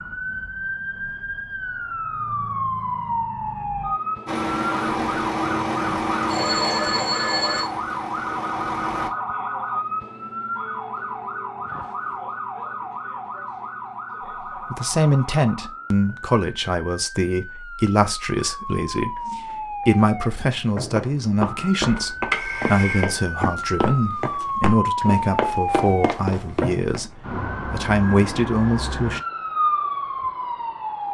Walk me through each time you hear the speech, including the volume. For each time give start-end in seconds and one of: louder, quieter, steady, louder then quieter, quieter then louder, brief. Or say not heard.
14.5-29.2 steady.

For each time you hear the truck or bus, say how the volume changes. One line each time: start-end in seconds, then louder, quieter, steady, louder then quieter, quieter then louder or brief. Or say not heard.
4.2-9.1 quieter.